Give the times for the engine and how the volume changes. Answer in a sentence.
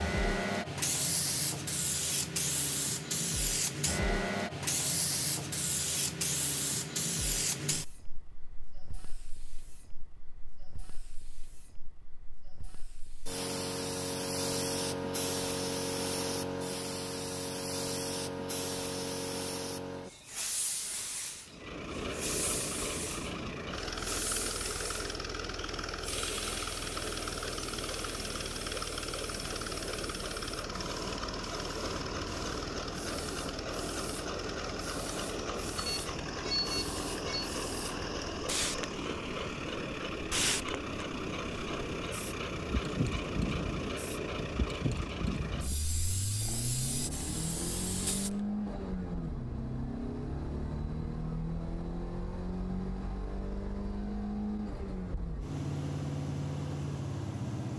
The engine can be heard from 21.4 to 57.7 s, at a steady volume.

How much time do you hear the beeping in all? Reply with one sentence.
You can hear the beeping for 2 seconds altogether.